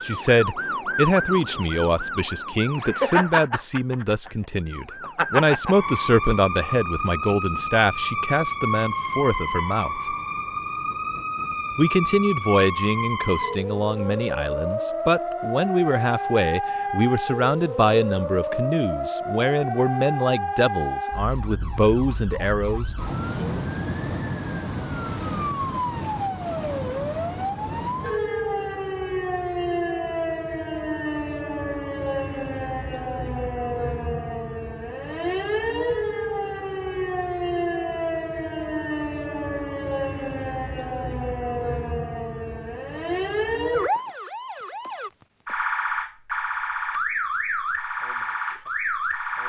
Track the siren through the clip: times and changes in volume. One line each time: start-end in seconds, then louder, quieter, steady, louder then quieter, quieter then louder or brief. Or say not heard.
0.0-49.4 steady.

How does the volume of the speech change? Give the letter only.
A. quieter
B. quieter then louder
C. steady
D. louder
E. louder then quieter
C.